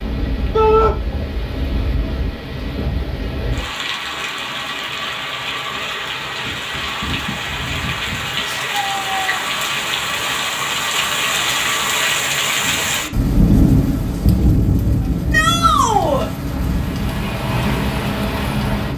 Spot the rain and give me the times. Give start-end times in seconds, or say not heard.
0.0-18.9.